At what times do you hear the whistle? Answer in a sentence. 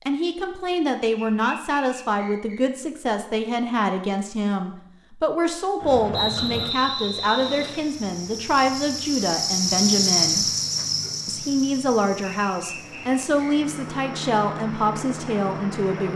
The whistle can be heard from 1.1 to 2.6 s, from 6.1 to 7.8 s and from 12.4 to 13.8 s.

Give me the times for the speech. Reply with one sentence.
The speech can be heard from 0.1 to 10.5 s and from 11.2 to 16.1 s.